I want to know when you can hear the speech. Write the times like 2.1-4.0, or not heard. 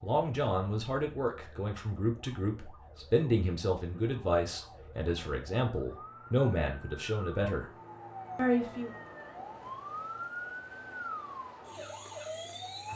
0.0-7.7, 8.3-8.9.